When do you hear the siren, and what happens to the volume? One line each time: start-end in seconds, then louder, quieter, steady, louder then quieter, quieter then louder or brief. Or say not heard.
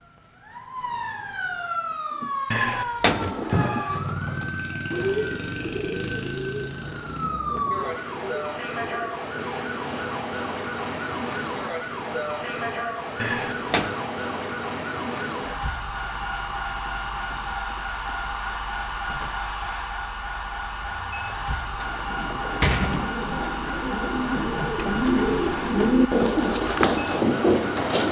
0.0-28.0 steady.